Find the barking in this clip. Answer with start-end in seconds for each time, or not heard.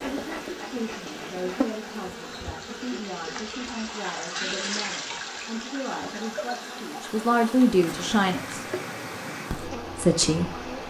not heard.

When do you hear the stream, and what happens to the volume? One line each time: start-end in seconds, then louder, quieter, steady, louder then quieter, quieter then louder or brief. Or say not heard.
0.0-10.8 louder then quieter.